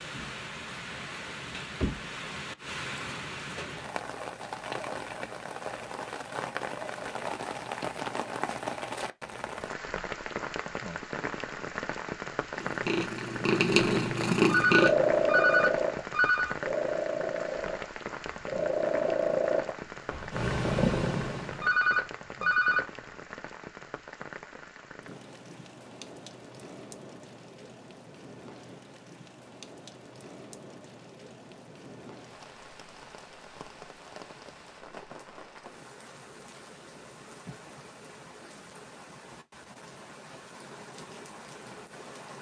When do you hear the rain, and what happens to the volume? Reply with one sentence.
You can hear the rain from 0.0 to 42.3 s, getting quieter.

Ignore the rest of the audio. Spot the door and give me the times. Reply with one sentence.
You can't hear the door here.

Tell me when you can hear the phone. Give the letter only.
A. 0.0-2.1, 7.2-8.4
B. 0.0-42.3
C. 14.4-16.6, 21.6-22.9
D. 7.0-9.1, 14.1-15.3
C.